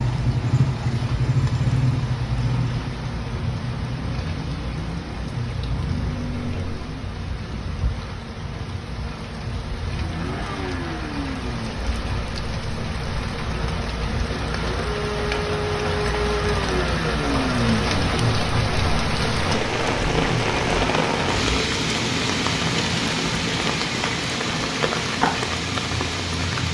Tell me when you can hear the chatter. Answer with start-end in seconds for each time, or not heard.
not heard.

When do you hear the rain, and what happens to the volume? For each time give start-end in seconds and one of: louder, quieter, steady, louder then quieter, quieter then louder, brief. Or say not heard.
0.0-26.7 louder.